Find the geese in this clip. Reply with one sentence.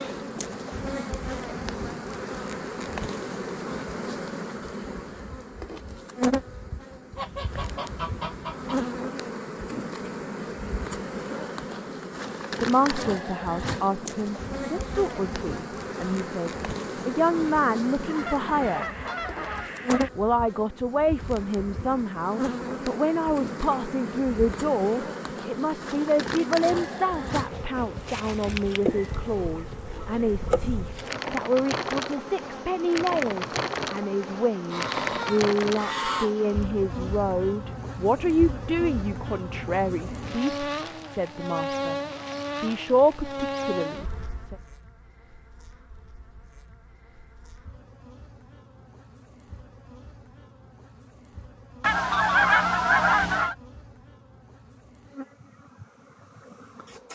You can hear the geese from 7.2 to 8.8 s, from 18.1 to 20.1 s, from 29.1 to 31.1 s, from 34.7 to 36.3 s and from 51.8 to 53.5 s.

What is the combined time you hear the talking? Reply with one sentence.
You can hear the talking for 30 seconds altogether.